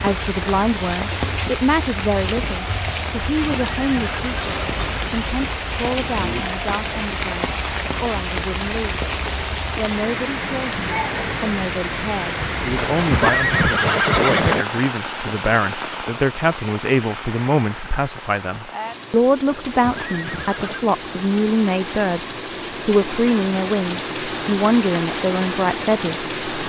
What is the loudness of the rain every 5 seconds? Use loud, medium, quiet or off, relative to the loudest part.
loud, loud, loud, medium, loud, loud.